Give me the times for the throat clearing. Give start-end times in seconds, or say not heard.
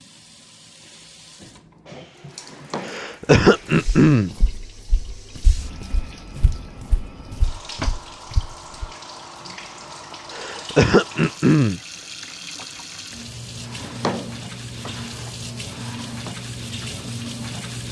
2.9-4.3, 10.3-11.8.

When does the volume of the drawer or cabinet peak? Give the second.
14 s.